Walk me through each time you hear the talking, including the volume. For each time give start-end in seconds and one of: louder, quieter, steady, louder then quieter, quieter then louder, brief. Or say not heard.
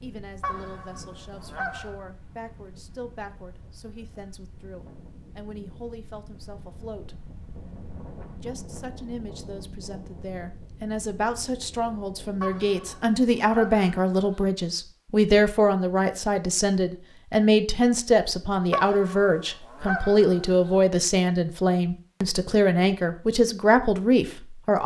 0.0-7.2 steady
8.4-24.8 louder.